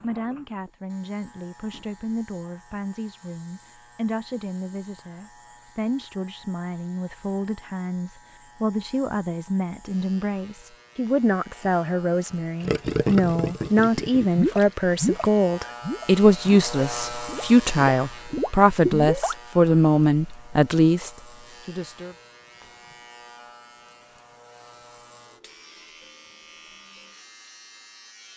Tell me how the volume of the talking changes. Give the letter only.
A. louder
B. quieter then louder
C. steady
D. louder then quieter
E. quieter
A.